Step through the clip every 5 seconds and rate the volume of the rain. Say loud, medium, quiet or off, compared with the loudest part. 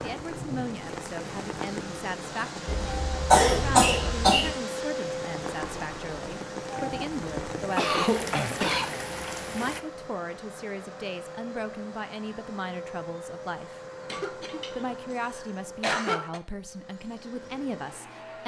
loud, loud, off, off.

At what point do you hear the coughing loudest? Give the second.
3 s.